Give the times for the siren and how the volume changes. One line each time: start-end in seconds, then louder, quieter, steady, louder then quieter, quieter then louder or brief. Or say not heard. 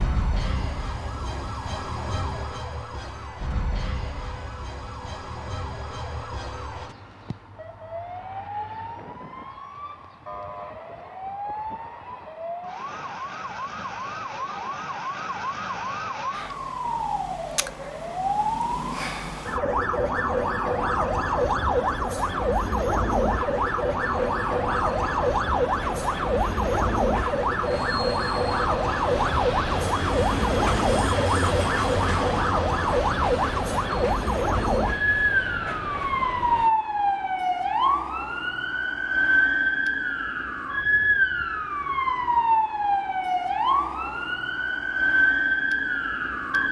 0.0-46.6 louder.